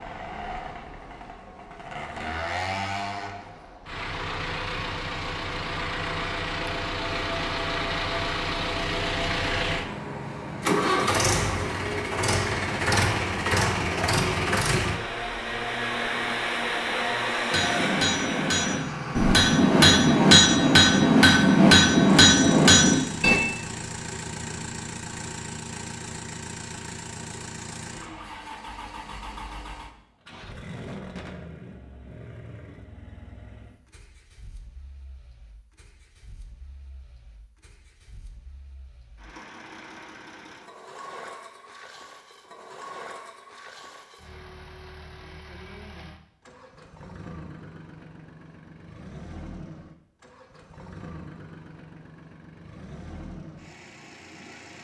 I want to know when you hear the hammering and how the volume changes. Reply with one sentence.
The hammering can be heard from 17.5 to 23.4 s, getting louder.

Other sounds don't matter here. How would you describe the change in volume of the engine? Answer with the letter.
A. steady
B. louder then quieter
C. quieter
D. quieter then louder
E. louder
C.